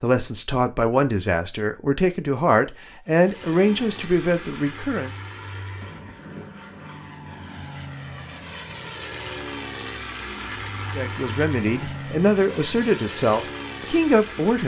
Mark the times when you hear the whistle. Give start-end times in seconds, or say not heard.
not heard.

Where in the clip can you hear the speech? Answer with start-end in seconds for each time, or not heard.
0.0-5.1, 10.9-14.6.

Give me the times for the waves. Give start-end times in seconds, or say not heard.
not heard.